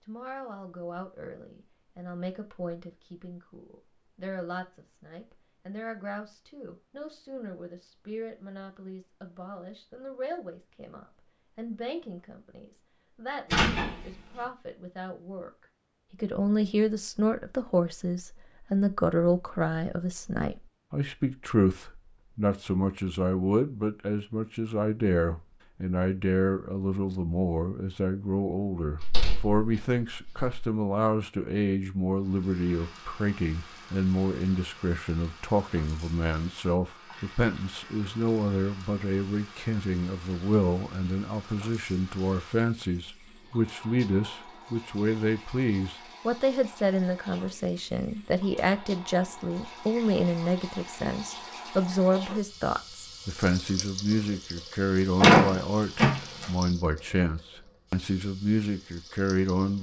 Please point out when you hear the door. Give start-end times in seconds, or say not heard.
13.5-14.1, 29.0-30.6, 55.2-56.5.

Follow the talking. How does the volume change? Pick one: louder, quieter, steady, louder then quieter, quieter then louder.
louder.